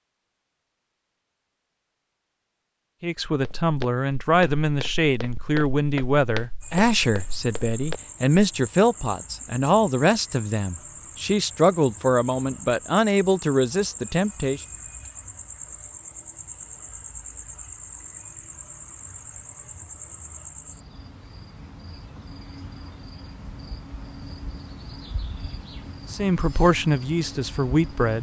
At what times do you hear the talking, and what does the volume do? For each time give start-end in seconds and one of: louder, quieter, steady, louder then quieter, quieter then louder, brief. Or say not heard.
3.0-14.6 steady
26.1-28.1 brief.